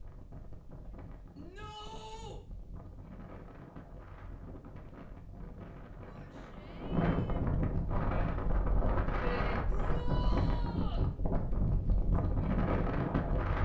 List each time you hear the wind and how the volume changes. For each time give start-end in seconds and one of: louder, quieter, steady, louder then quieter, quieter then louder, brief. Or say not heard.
0.0-13.6 louder.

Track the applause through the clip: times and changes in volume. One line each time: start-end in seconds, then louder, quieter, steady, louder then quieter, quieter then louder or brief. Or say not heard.
not heard.